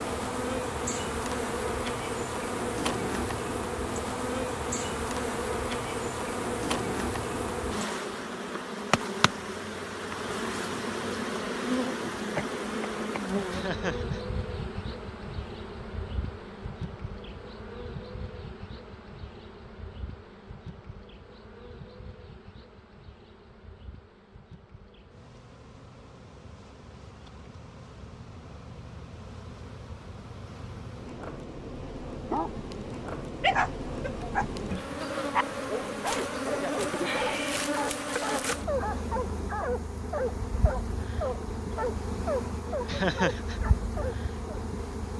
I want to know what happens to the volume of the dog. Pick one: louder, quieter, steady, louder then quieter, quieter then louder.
steady.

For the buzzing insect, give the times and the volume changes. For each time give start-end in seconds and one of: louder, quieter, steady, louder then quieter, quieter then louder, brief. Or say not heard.
0.0-45.1 quieter then louder.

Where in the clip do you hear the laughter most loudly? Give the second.
43 s.